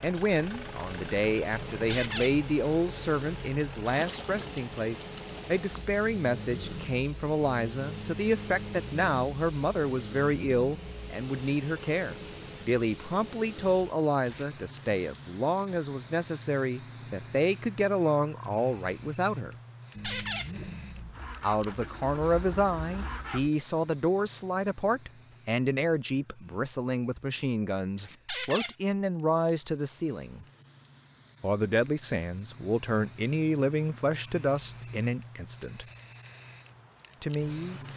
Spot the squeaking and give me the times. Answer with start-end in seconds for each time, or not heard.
1.9-2.4, 20.0-20.5, 28.2-28.8.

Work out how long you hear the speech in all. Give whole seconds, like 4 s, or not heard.
34 s.